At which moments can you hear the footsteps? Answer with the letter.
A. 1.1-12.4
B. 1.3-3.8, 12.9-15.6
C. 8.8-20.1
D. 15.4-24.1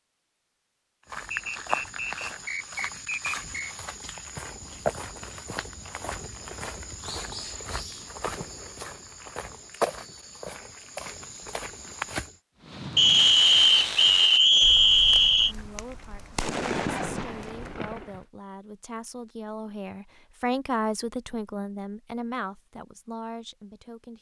A.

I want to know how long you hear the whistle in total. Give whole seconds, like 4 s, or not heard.
5 s.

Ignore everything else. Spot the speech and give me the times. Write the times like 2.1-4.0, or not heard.
15.4-24.1.